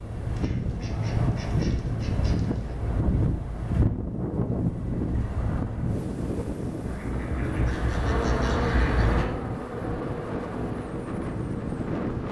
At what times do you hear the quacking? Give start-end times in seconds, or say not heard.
0.3-2.8, 6.8-9.3.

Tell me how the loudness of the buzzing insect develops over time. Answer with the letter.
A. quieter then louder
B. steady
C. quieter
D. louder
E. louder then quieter
C.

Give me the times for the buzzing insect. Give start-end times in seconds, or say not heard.
8.0-12.2.